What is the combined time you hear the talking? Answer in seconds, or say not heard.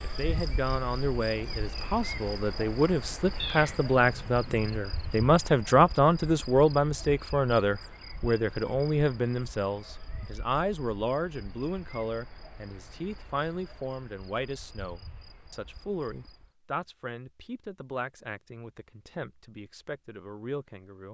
21 s.